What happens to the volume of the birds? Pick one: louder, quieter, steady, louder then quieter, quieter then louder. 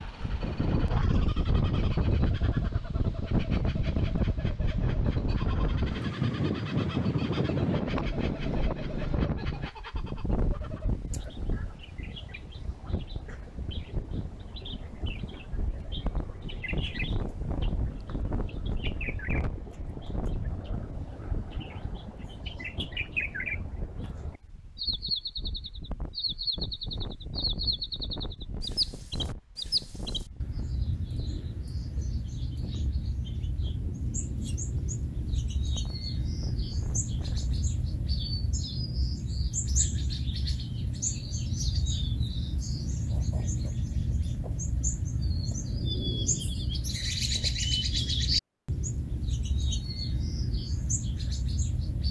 louder.